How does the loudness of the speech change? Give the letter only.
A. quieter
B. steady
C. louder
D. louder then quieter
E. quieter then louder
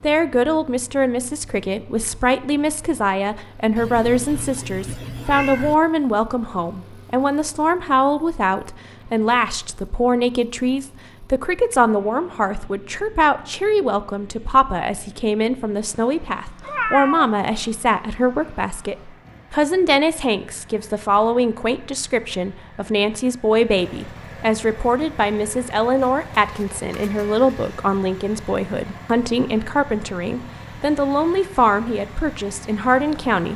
B.